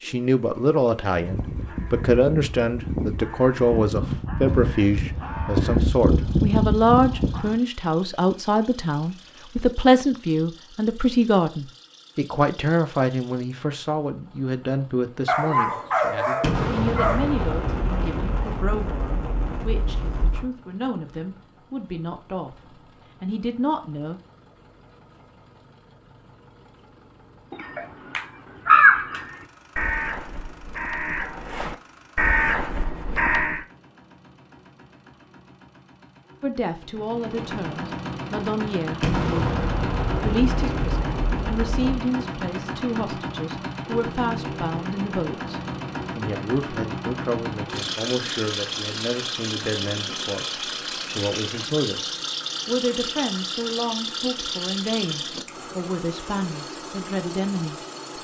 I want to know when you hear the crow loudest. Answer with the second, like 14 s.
29 s.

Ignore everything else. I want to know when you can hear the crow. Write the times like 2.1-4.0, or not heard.
1.1-7.6, 27.5-33.6.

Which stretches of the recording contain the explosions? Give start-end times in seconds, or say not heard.
16.4-20.4, 39.0-42.0.